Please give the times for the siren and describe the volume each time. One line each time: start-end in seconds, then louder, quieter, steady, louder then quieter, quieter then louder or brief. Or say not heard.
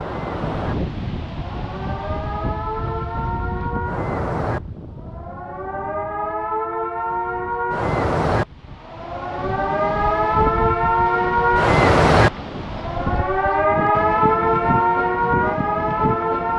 0.0-16.5 louder.